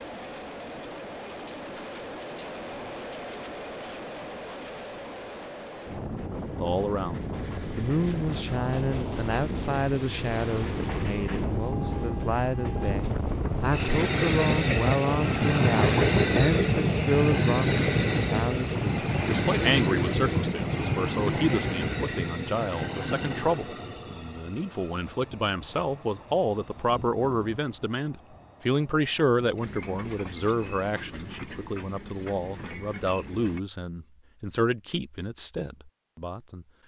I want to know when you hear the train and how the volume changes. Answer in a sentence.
You can hear the train from 0.0 to 33.6 s, getting louder then quieter.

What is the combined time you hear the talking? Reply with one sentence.
You can hear the talking for 30 seconds altogether.